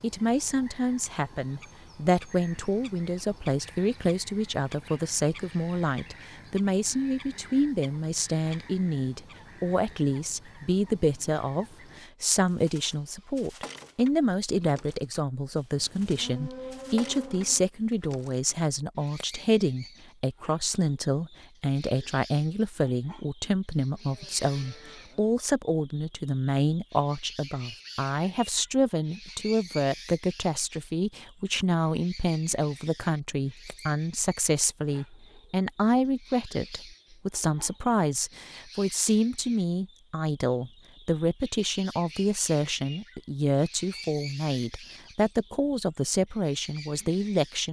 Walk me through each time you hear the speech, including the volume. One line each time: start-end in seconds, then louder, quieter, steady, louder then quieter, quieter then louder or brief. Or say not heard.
0.0-47.6 steady.